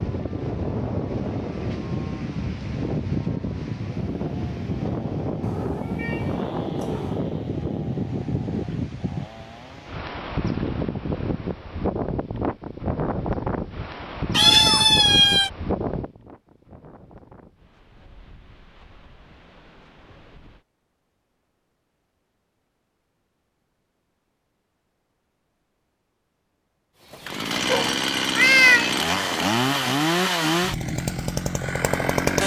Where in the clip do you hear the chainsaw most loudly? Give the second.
30 s.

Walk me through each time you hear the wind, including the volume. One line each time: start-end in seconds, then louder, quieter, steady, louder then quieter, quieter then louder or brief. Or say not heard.
0.0-20.6 quieter.